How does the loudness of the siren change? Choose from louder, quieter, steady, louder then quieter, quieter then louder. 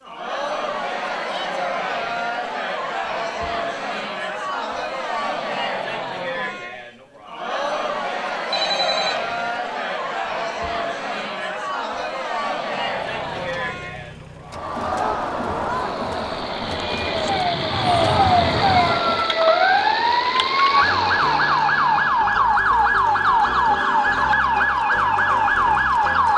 steady.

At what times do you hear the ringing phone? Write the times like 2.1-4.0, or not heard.
8.5-9.3.